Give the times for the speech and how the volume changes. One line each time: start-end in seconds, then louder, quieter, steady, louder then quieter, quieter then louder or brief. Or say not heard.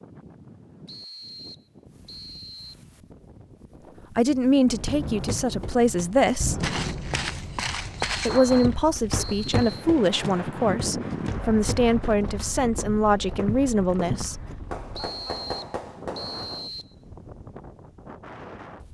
4.2-6.6 brief
8.2-14.3 steady.